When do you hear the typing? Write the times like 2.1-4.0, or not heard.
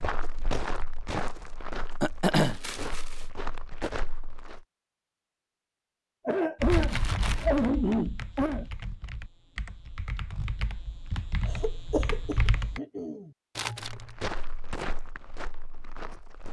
6.6-12.8.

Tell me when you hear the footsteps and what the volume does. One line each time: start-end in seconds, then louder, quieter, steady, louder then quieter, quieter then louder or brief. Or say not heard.
0.0-4.6 quieter then louder
13.8-16.4 brief.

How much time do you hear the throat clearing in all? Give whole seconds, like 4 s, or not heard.
5 s.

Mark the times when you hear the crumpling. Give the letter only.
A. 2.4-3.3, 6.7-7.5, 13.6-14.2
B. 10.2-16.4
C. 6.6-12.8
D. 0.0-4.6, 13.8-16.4
A.